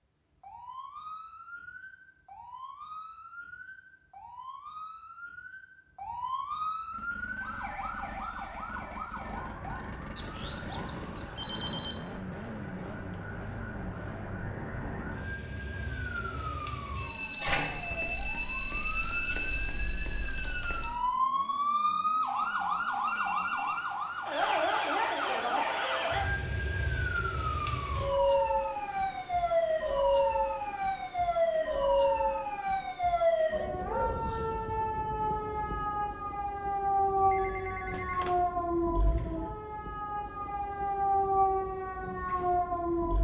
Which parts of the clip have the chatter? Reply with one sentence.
You can't hear the chatter here.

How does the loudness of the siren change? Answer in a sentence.
The volume of the siren goes up.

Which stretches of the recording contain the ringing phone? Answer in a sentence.
You can hear the ringing phone from 10.2 to 12.1 s, from 22.4 to 23.8 s and from 37.1 to 38.4 s.